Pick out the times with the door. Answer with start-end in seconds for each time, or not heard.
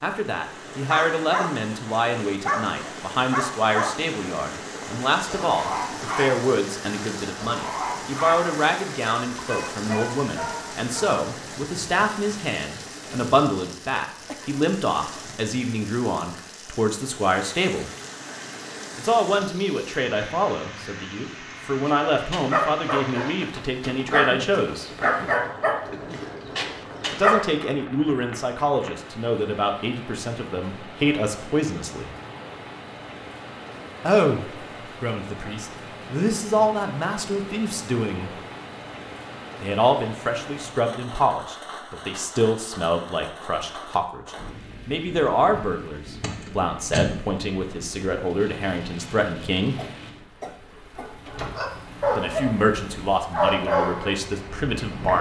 46.2-47.1.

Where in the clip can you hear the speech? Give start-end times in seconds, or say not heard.
0.0-17.9, 18.9-24.9, 27.1-32.1, 34.0-38.4, 39.6-49.8, 52.1-55.1.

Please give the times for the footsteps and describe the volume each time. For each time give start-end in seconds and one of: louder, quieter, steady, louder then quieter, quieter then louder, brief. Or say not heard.
not heard.